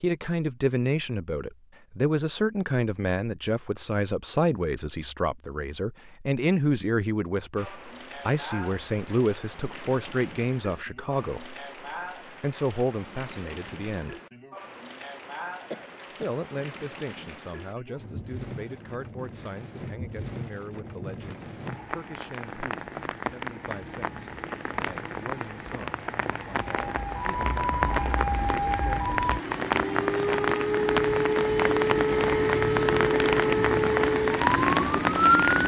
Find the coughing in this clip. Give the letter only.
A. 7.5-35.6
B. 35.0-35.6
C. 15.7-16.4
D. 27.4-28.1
C.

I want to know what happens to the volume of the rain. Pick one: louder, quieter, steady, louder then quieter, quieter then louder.
louder.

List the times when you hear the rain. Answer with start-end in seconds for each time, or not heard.
7.5-35.6.